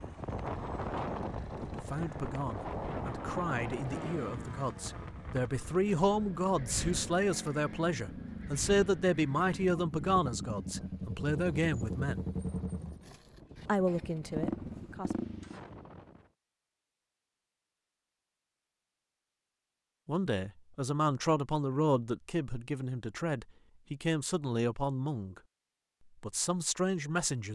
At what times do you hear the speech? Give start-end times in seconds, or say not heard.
1.6-12.2, 13.7-15.2, 20.1-25.4, 26.2-27.5.